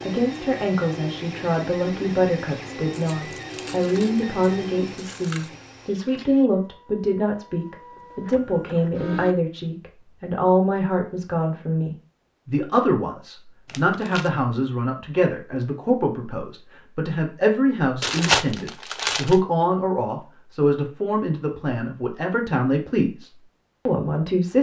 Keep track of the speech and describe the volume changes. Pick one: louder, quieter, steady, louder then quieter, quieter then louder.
steady.